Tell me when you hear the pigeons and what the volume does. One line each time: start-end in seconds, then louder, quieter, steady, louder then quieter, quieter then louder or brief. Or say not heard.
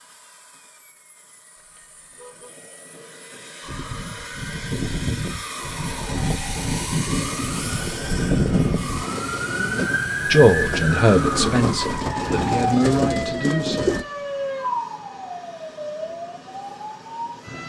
6.0-14.1 louder.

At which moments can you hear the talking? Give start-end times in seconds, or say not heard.
10.3-14.0.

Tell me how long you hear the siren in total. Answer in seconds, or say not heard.
14 s.